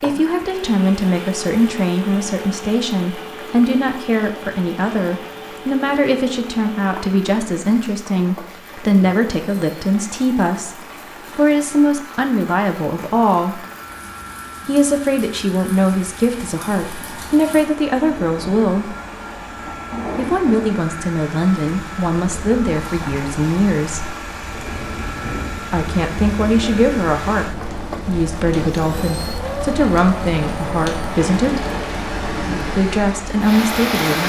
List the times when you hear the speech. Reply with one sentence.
You can hear the speech from 0.0 to 13.7 s, from 14.7 to 18.9 s, from 20.1 to 24.1 s, from 25.7 to 31.6 s and from 32.7 to 34.2 s.